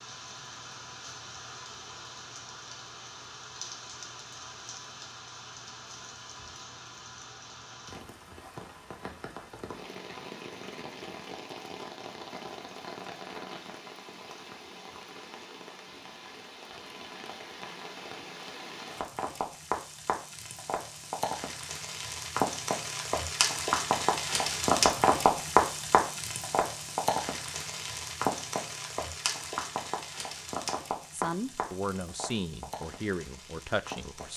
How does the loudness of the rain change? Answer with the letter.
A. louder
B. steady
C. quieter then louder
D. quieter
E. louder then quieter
E.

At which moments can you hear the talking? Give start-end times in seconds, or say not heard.
31.1-34.3.